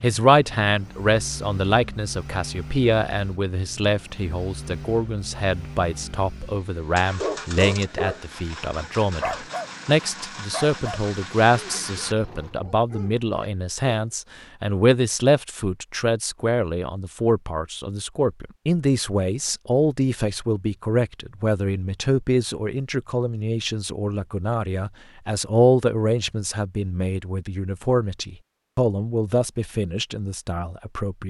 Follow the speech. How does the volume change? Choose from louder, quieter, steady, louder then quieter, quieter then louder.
steady.